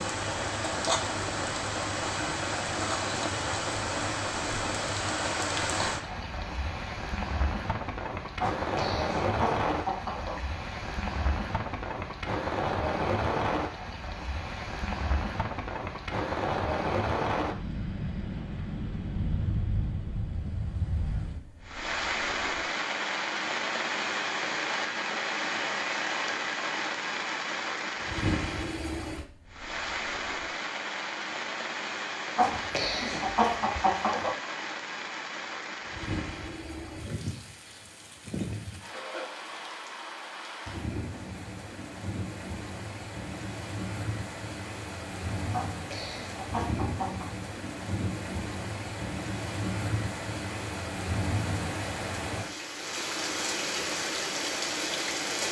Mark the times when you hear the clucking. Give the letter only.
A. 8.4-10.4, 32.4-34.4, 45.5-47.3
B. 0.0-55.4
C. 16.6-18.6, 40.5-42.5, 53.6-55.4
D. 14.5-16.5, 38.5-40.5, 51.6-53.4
A.